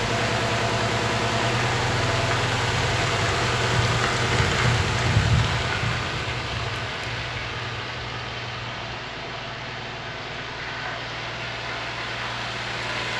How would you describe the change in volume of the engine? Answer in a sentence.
The volume of the engine goes down.